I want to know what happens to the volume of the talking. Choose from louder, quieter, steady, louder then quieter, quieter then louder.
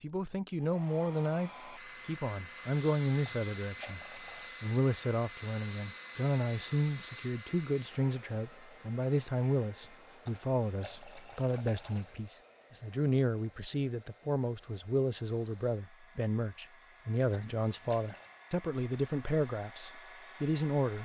steady.